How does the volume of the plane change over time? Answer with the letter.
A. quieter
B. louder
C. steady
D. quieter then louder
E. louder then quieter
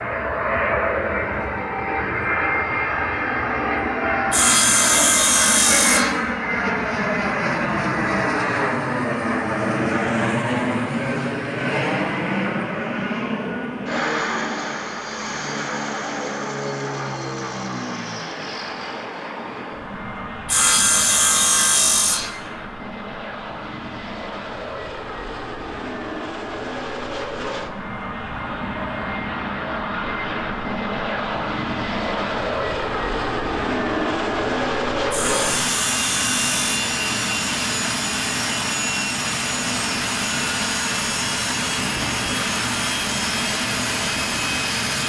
D.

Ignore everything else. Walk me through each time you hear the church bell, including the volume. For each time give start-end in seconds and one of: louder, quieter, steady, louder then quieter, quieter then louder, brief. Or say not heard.
not heard.